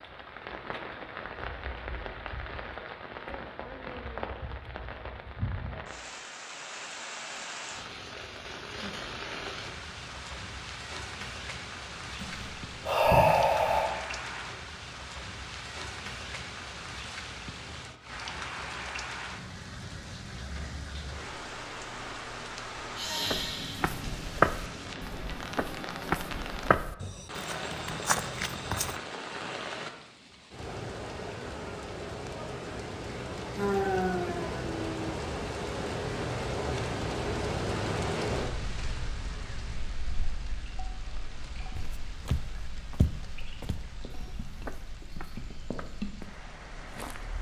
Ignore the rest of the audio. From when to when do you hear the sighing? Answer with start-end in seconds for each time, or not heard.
12.2-13.9, 22.9-23.9, 33.5-35.2.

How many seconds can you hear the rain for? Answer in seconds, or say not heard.
47 s.